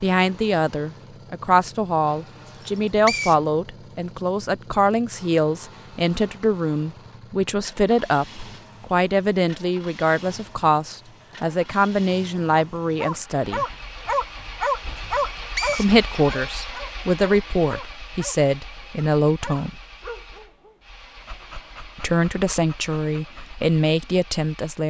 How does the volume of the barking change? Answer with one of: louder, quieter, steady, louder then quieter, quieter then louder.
quieter.